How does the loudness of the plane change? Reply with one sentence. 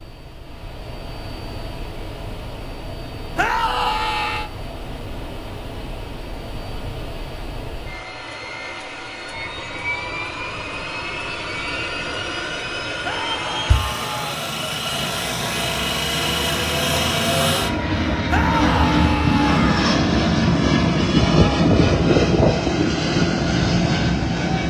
The loudness of the plane goes up.